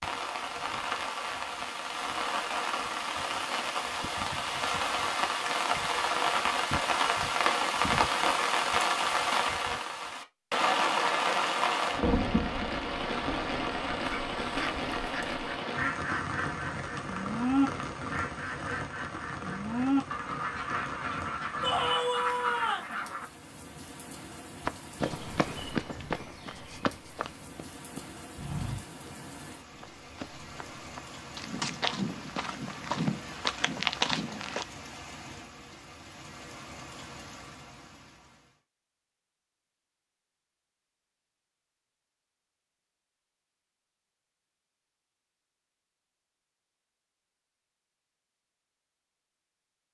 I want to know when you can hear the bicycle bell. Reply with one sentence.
The bicycle bell can't be heard in this clip.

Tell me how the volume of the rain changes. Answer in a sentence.
The loudness of the rain goes down.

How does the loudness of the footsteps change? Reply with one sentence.
The loudness of the footsteps goes down, then up.